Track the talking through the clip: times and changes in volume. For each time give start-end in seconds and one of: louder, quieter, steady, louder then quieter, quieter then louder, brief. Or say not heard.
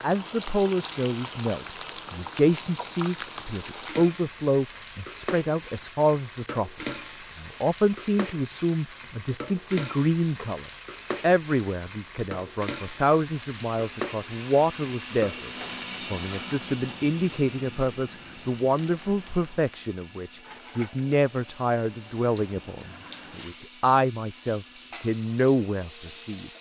0.0-26.5 steady.